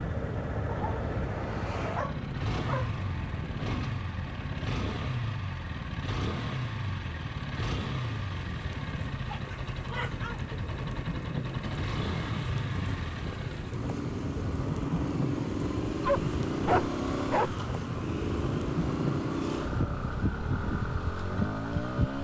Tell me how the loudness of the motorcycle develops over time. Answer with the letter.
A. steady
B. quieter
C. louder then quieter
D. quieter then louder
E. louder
A.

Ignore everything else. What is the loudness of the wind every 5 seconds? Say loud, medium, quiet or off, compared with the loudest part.
medium, medium, loud, loud, loud.